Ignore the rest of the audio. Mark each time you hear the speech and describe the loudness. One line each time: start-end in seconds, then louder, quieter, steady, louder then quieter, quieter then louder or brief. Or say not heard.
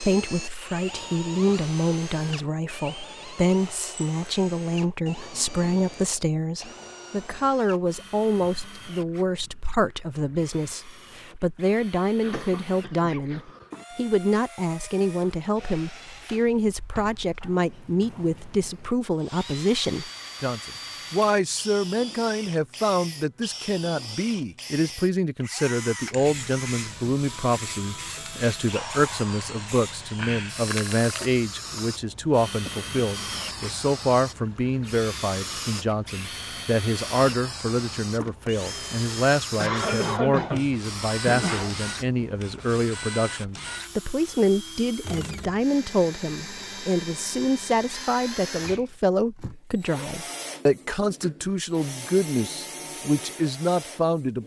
0.0-54.4 steady.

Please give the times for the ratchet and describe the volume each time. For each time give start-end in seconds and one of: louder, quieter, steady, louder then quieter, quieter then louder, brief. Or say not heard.
not heard.